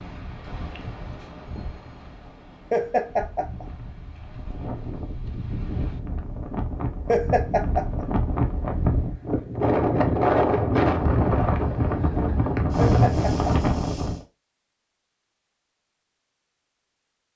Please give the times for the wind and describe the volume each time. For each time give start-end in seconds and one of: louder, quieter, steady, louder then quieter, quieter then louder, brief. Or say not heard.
0.0-14.2 louder.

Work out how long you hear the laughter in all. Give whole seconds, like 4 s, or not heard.
3 s.